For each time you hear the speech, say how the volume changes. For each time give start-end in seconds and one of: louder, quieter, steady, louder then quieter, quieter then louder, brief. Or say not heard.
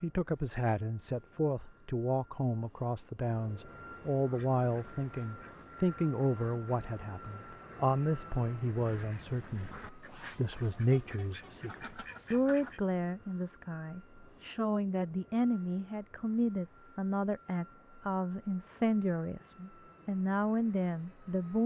0.0-21.6 steady.